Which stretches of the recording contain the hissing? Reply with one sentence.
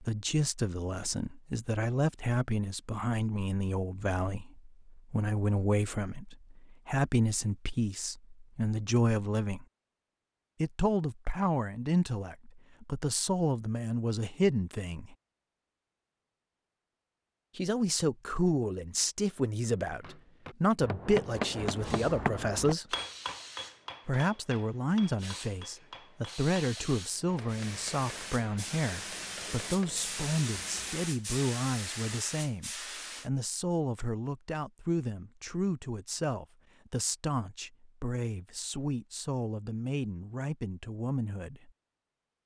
You can hear the hissing from 21.6 to 33.3 s.